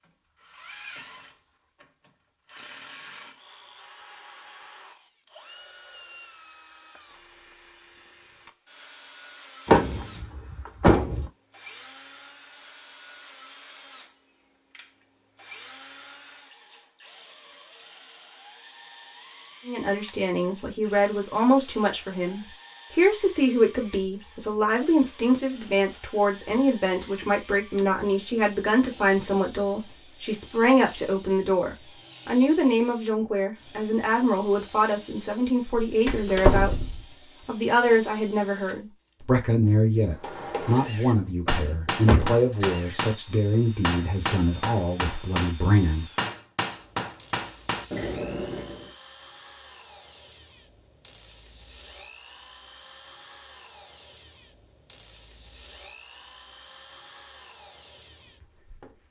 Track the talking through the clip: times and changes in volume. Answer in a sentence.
The talking can be heard from 19.6 to 46.0 s, at a steady volume.